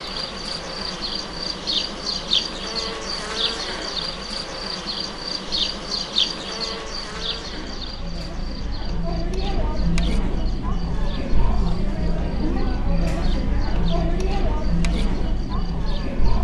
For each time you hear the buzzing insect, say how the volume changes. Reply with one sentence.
You can hear the buzzing insect from 0.0 to 16.4 s, getting quieter.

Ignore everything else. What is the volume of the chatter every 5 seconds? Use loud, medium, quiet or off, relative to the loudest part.
quiet, medium, loud, loud.